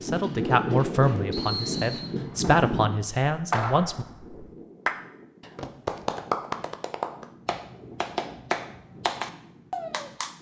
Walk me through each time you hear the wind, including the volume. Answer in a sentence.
You can hear the wind from 0.0 to 10.3 s, getting quieter.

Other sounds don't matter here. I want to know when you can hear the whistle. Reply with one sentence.
The whistle can be heard from 1.3 to 2.1 s.